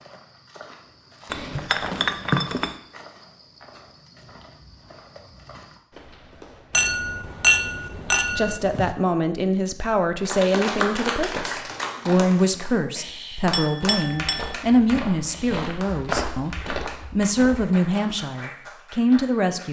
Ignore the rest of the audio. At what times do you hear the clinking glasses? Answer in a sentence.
The clinking glasses can be heard from 1.3 to 2.8 s, from 6.7 to 8.9 s and from 13.5 to 14.6 s.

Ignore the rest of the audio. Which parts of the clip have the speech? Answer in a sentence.
The speech can be heard from 8.3 to 19.6 s.